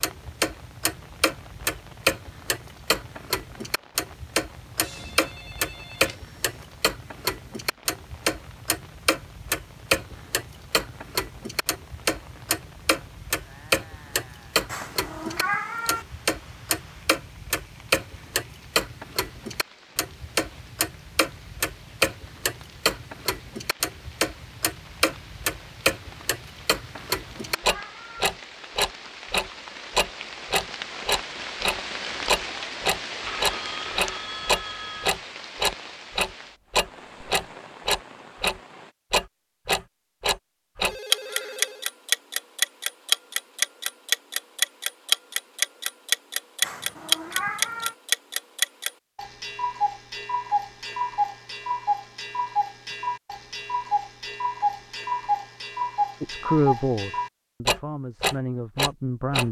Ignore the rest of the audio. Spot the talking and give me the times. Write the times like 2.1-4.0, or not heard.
56.2-59.4.